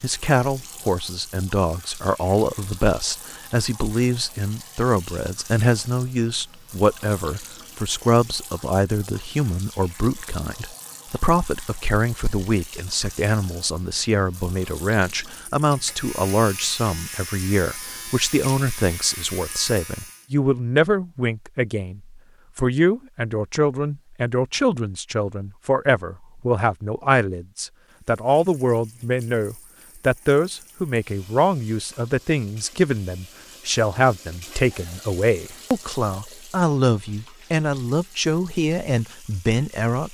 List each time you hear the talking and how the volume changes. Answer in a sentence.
The talking can be heard from 0.0 to 40.1 s, at a steady volume.